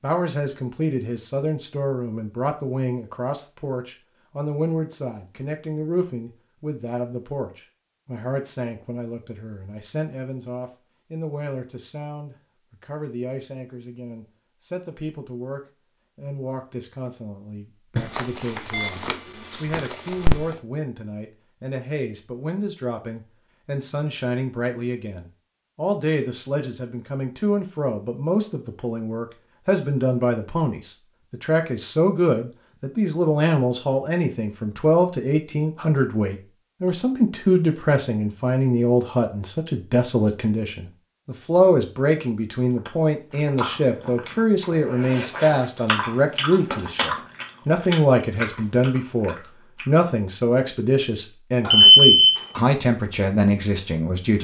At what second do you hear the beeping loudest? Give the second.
52 s.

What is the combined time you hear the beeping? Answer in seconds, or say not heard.
3 s.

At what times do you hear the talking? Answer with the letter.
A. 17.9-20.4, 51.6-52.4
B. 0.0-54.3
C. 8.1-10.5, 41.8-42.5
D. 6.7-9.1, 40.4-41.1
B.